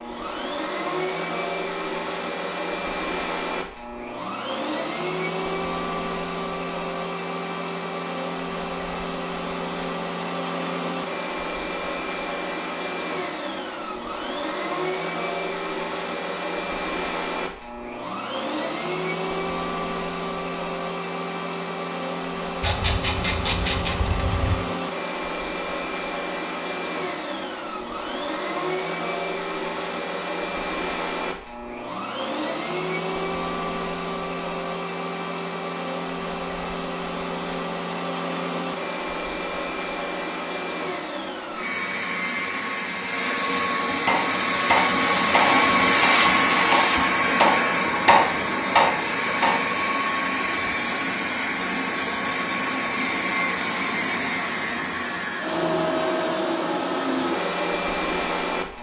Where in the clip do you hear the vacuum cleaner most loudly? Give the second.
46 s.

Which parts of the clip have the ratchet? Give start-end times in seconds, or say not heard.
22.6-24.6.